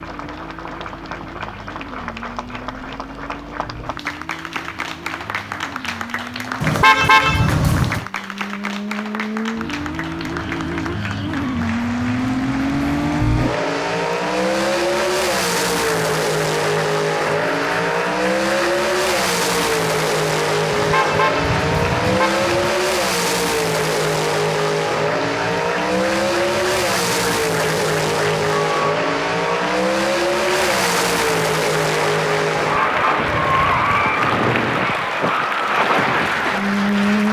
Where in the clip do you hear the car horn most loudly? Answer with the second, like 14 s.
7 s.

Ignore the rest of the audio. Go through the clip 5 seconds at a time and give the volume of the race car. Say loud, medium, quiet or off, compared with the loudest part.
quiet, medium, loud, loud, loud, loud, loud, loud.